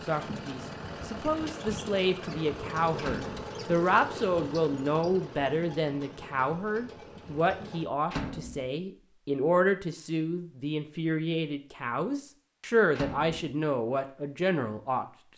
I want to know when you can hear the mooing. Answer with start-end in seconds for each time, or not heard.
not heard.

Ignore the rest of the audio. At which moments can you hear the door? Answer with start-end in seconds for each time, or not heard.
3.0-3.5, 8.1-8.7, 12.9-13.4.